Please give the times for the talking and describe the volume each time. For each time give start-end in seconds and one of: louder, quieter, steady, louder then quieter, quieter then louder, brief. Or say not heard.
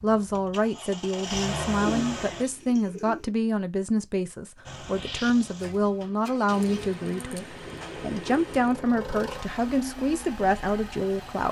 0.0-11.4 steady.